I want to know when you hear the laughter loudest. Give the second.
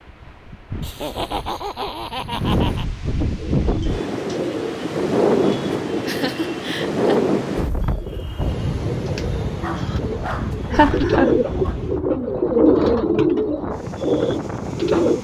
11 s.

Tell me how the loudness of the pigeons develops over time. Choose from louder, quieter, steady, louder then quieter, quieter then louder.
louder.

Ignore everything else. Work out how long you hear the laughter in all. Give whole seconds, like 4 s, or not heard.
4 s.